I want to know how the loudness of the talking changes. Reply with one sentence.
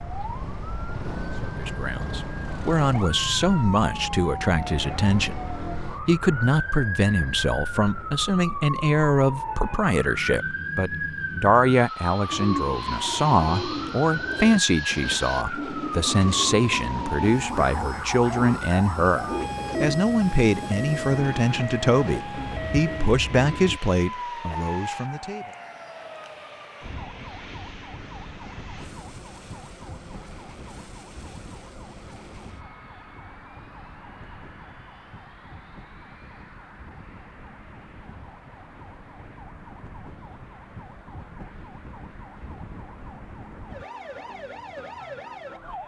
The volume of the talking stays about the same.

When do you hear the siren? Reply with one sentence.
You can hear the siren from 0.0 to 45.8 s.